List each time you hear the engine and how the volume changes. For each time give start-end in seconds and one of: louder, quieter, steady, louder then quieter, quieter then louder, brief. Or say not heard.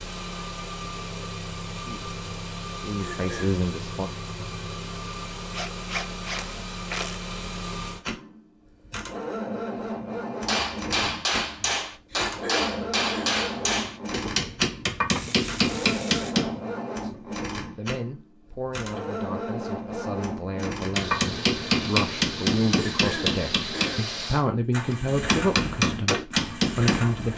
0.0-27.3 steady.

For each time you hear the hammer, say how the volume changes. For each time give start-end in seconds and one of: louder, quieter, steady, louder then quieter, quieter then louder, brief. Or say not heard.
10.4-16.6 steady
20.9-27.1 quieter then louder.